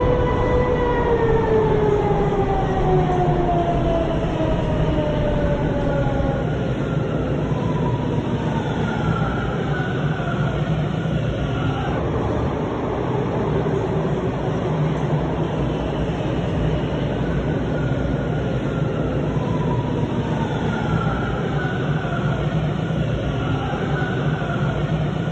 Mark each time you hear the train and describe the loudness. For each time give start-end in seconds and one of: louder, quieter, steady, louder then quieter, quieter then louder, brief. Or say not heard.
0.0-25.2 steady.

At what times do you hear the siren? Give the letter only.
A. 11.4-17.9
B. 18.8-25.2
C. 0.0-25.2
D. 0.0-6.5
D.